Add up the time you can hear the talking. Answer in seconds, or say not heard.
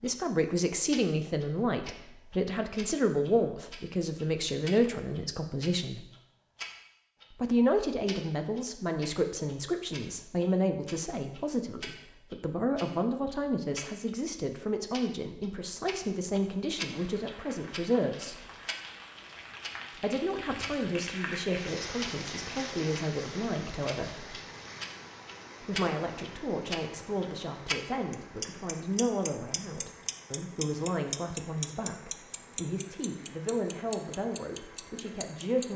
32 s.